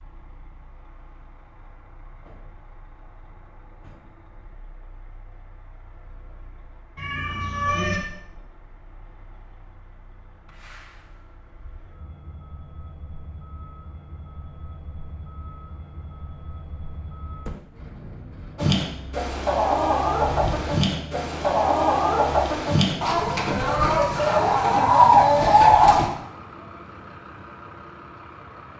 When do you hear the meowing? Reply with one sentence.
You can hear the meowing from 7.0 to 8.0 s and from 20.3 to 20.8 s.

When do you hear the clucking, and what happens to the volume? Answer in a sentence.
The clucking can be heard from 18.6 to 26.1 s, getting louder.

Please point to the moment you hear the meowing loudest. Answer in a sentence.
The loudest moment of the meowing is at 8 seconds.